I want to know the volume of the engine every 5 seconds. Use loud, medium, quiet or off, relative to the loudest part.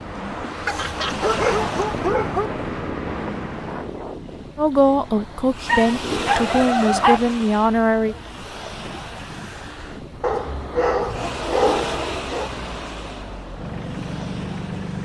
loud, off, loud.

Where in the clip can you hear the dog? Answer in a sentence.
You can hear the dog from 0.7 to 2.5 s, from 5.7 to 7.2 s and from 10.2 to 12.5 s.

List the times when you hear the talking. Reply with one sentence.
You can hear the talking from 4.5 to 8.2 s.